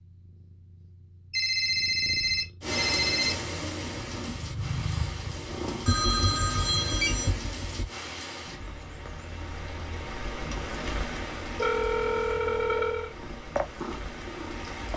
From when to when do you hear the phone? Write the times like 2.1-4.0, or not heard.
1.3-3.4, 5.8-7.8, 11.6-13.1.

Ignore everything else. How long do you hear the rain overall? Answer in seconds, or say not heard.
12 s.